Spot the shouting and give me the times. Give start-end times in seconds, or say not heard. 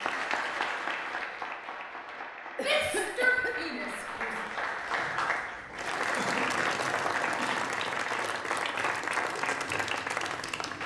2.5-4.3.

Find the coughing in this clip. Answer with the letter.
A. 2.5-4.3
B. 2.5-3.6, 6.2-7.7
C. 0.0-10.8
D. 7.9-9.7
B.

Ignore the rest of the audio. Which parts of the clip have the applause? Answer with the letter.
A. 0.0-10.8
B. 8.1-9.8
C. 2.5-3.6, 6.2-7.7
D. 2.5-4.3
A.